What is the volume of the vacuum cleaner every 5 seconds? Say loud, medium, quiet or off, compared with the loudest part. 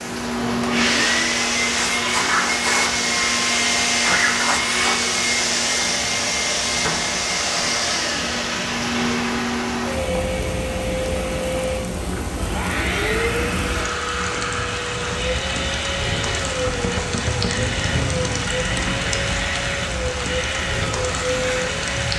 loud, loud, medium, medium, medium.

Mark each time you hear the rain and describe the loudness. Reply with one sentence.
You can hear the rain from 0.0 to 22.1 s, getting louder.